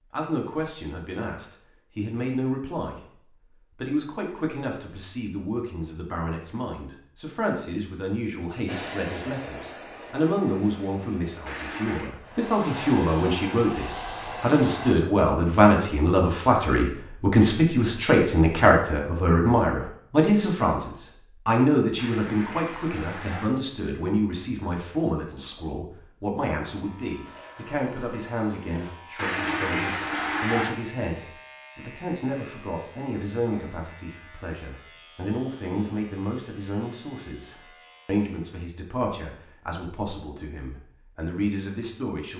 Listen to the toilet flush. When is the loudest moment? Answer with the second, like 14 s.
30 s.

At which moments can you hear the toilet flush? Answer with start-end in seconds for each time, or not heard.
11.4-12.1, 21.9-23.5, 29.1-30.7.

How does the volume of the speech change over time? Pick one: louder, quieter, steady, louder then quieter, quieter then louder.
louder then quieter.